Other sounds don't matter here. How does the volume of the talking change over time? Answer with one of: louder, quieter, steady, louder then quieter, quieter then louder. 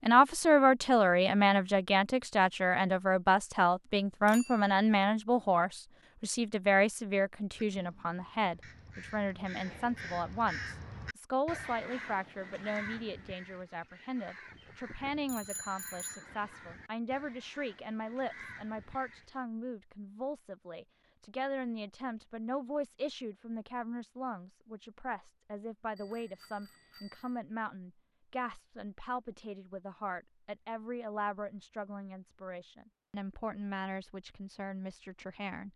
quieter.